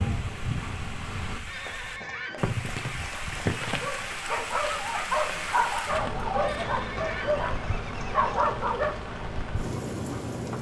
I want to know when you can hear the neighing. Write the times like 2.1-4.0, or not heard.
1.4-3.5, 6.4-8.4.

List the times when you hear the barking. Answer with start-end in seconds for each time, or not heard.
3.6-8.9.